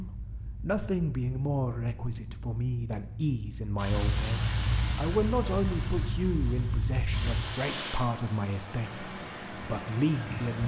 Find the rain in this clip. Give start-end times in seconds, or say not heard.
3.8-10.6.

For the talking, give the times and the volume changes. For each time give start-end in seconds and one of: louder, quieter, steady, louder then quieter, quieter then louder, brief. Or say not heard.
0.0-10.6 steady.